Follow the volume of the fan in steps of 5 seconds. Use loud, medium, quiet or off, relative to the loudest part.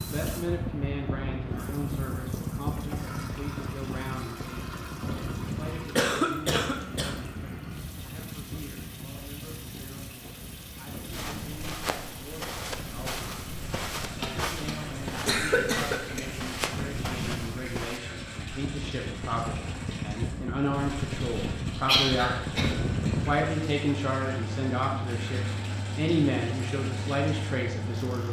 loud, medium, medium, medium, loud, loud.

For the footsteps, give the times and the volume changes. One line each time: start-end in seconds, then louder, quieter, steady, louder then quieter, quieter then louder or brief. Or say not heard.
11.1-18.0 steady.